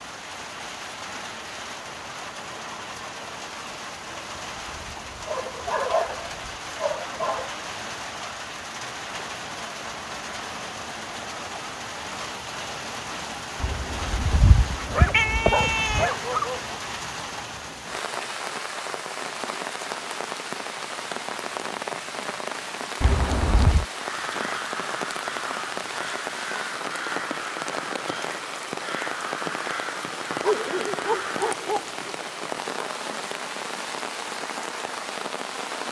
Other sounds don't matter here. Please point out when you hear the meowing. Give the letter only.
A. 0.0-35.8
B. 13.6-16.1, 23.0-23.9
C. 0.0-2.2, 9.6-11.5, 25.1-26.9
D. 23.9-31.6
B.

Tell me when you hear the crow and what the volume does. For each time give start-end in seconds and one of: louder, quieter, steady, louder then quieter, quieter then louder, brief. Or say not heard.
23.9-31.6 steady.